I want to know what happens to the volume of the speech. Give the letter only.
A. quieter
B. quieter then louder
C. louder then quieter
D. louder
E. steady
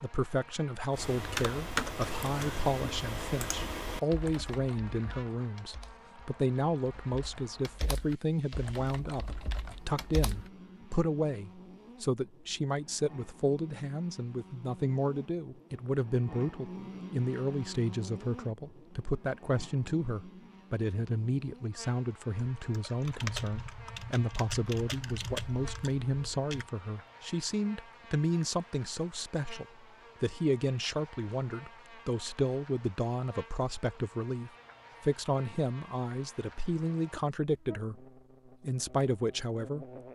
E.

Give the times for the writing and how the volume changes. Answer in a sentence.
You can't hear the writing here.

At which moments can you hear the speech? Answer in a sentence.
The speech can be heard from 0.0 to 39.9 s.